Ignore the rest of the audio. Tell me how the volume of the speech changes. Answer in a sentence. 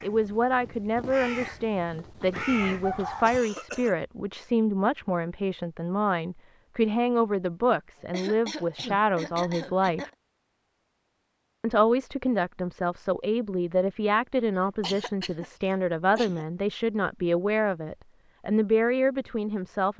The volume of the speech stays about the same.